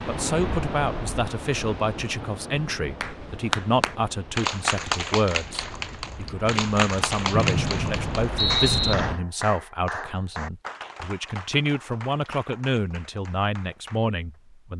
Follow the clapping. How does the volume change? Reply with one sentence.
The volume of the clapping goes down.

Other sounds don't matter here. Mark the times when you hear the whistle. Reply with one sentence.
The whistle can be heard from 7.3 to 8.9 s.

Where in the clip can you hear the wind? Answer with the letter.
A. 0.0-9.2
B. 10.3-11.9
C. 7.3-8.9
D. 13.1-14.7
A.